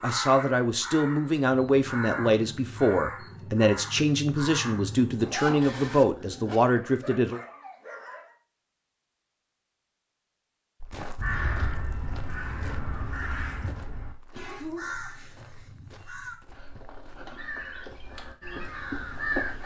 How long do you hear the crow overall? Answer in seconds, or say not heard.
14 s.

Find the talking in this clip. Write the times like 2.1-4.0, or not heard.
0.0-7.4.